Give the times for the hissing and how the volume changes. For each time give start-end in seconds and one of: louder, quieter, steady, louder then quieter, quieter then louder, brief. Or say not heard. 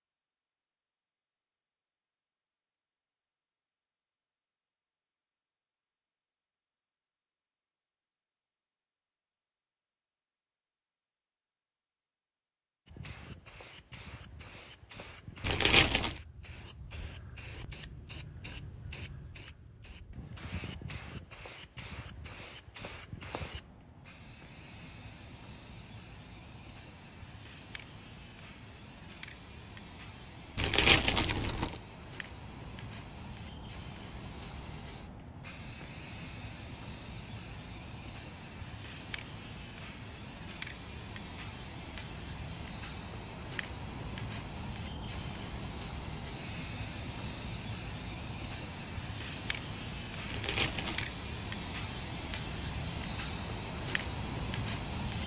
12.8-55.2 louder.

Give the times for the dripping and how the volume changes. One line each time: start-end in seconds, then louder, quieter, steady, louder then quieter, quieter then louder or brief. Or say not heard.
not heard.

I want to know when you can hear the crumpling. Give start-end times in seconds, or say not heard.
15.4-16.1, 30.6-31.8, 50.2-51.0.